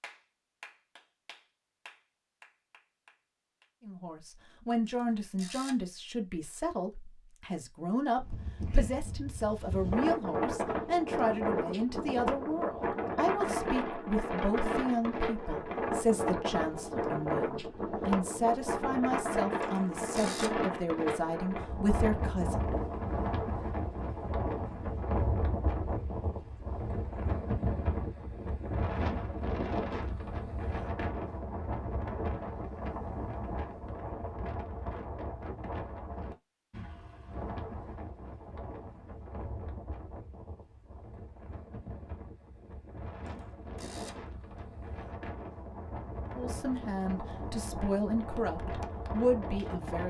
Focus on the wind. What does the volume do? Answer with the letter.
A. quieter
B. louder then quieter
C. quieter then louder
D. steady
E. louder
A.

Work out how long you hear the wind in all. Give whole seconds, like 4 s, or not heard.
42 s.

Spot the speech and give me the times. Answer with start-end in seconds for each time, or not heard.
3.9-22.7, 46.4-50.0.